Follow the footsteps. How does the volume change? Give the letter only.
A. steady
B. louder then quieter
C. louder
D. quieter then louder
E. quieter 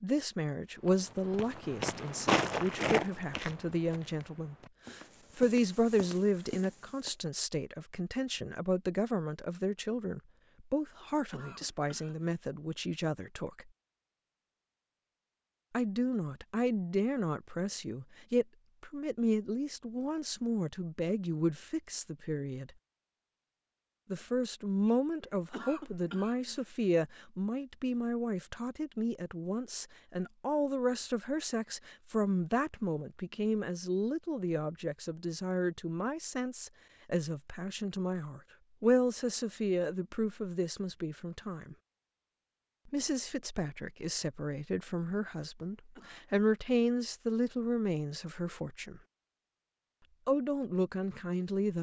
E.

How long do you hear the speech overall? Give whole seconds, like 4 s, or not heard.
46 s.